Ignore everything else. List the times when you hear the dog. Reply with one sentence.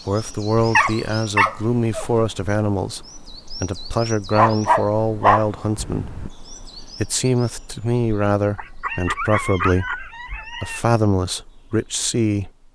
The dog can be heard from 0.6 to 2.1 s, from 4.3 to 6.3 s and from 8.6 to 10.8 s.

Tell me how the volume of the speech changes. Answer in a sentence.
The volume of the speech stays about the same.